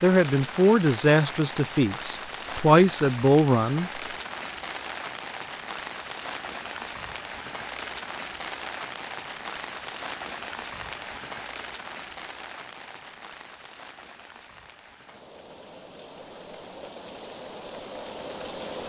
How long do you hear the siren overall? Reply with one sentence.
You can't hear the siren here.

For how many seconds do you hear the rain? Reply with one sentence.
The rain can be heard for 19 seconds in total.